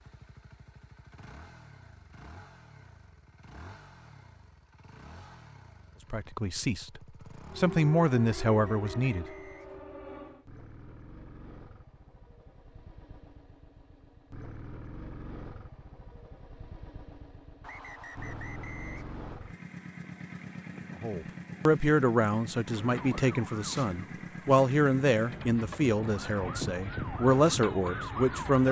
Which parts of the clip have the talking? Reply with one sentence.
You can hear the talking from 6.1 to 9.2 s and from 21.0 to 28.6 s.